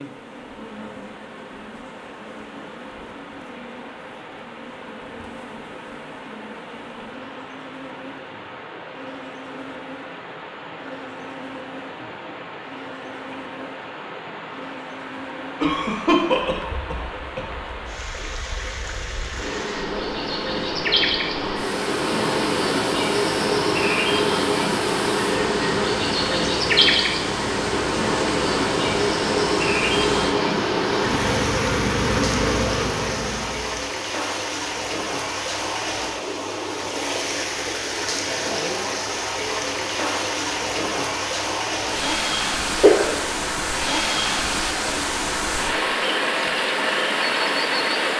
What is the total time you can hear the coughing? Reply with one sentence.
You can hear the coughing for 3 seconds altogether.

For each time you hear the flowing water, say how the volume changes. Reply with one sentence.
You can hear the flowing water from 0.0 to 48.1 s, getting louder.